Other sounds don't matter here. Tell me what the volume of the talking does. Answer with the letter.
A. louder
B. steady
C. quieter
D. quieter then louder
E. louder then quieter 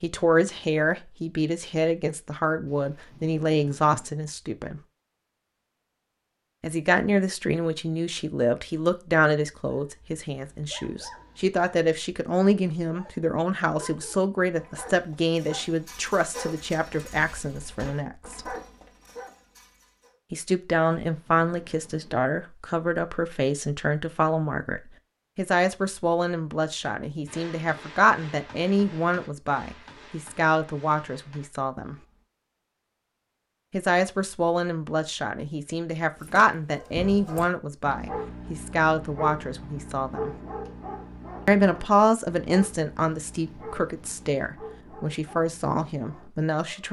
B.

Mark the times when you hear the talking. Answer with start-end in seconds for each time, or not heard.
0.0-4.8, 6.6-18.6, 20.3-31.9, 33.7-40.4, 41.5-46.8.